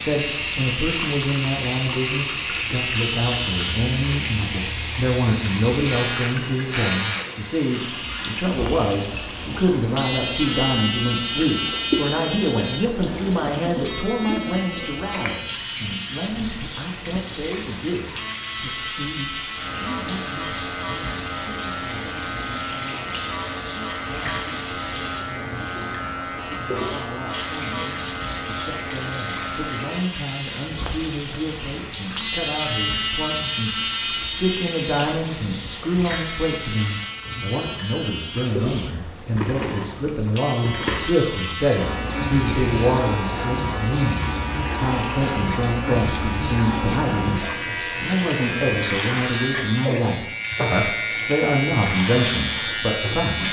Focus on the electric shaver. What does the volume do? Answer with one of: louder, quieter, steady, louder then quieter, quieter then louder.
steady.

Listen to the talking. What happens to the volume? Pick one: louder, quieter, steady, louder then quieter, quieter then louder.
quieter then louder.